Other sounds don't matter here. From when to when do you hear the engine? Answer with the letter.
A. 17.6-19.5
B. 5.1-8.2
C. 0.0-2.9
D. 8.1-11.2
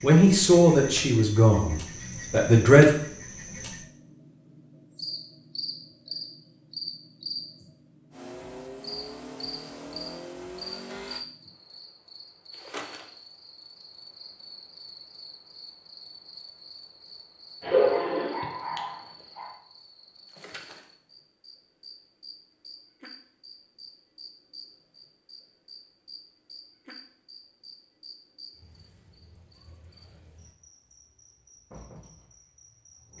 D.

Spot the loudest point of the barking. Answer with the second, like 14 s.
18 s.